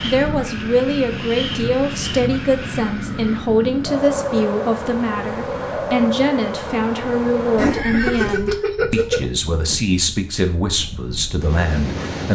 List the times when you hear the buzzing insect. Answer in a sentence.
You can't hear the buzzing insect here.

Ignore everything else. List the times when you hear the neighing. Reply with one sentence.
The neighing can be heard from 7.5 to 9.3 s.